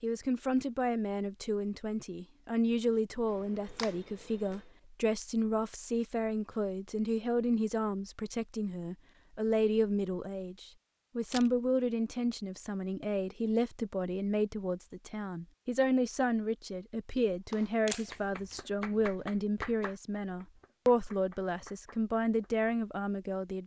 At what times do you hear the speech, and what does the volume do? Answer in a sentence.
The speech can be heard from 0.0 to 23.6 s, at a steady volume.